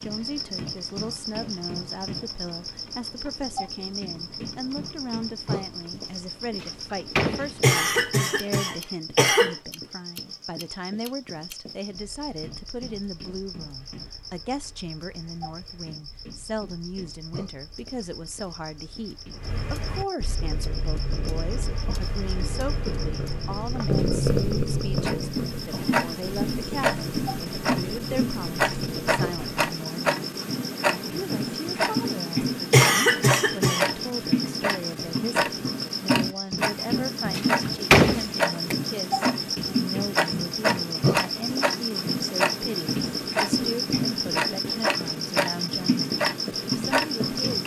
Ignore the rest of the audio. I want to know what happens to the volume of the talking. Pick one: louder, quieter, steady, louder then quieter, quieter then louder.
steady.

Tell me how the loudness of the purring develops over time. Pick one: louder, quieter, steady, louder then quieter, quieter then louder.
louder then quieter.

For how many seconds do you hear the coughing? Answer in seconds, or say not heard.
3 s.